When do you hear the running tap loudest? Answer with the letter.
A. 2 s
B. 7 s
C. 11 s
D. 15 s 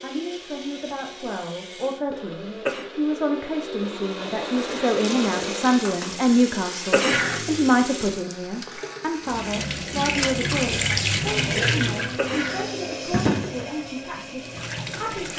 C.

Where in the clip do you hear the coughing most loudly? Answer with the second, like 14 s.
7 s.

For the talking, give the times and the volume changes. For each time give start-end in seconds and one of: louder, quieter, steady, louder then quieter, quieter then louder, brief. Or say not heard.
0.0-15.3 louder then quieter.